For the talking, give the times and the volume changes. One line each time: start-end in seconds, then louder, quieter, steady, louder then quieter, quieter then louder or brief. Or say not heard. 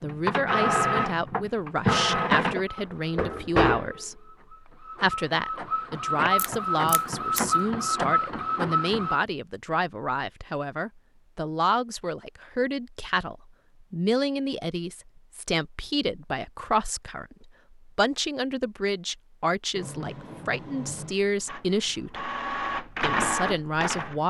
0.0-22.2 steady
23.0-24.2 brief.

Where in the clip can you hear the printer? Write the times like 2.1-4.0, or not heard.
0.0-9.2, 19.8-24.2.